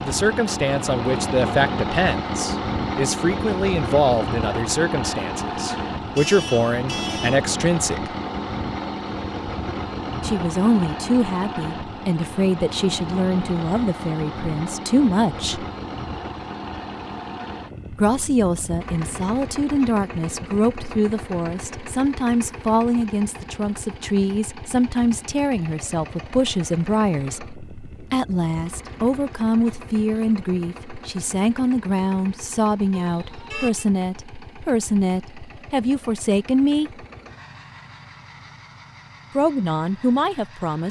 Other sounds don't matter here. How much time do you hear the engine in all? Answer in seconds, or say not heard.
41 s.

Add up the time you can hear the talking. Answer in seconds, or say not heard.
34 s.